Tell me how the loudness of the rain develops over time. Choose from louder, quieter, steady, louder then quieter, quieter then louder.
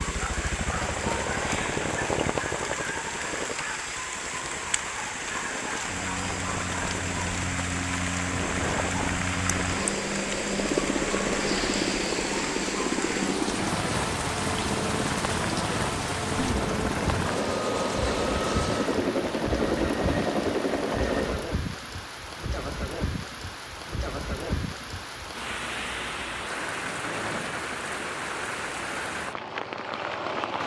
steady.